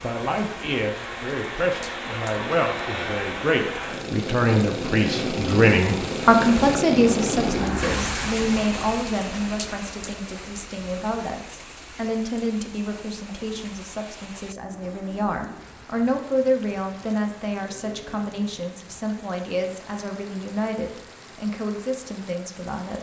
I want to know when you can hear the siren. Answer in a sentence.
You can't hear the siren here.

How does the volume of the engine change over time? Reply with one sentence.
The loudness of the engine goes up.